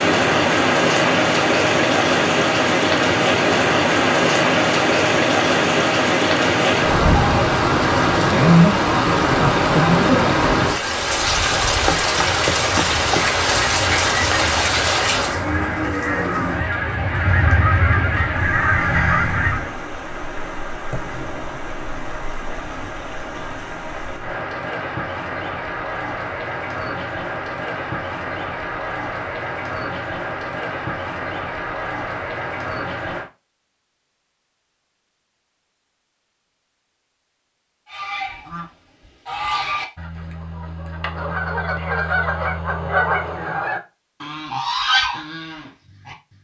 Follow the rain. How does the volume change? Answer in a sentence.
The volume of the rain goes down.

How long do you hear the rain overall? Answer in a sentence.
You can hear the rain for 33 seconds altogether.